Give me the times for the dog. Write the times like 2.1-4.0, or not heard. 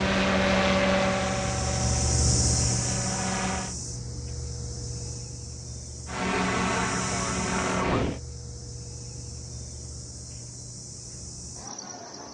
not heard.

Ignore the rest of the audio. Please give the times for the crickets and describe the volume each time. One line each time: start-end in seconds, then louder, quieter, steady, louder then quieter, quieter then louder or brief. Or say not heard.
0.0-12.2 quieter.